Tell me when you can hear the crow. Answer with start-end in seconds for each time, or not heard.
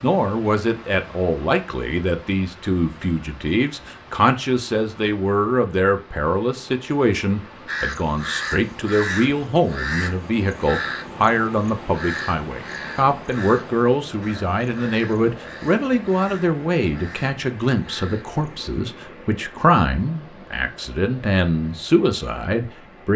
7.7-18.5.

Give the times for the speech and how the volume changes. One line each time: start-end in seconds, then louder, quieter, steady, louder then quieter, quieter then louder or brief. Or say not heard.
0.0-23.1 steady.